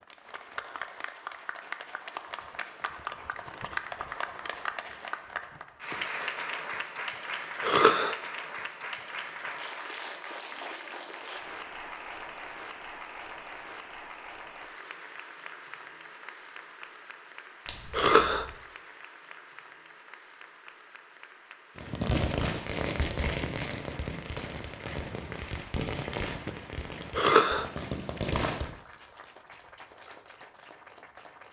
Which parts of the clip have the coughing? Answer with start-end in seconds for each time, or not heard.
7.6-8.2, 17.9-18.4, 27.1-27.6.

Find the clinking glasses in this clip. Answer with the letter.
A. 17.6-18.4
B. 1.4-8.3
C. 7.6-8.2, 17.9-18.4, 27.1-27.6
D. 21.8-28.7
A.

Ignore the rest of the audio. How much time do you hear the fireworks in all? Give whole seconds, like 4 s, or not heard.
7 s.